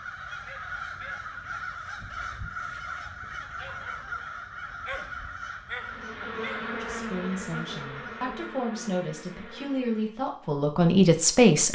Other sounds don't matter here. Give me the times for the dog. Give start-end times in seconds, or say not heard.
0.5-6.8.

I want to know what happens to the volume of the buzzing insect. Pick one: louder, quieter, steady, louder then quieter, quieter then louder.
quieter.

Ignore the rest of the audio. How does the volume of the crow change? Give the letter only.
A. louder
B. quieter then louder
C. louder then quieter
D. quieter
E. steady
D.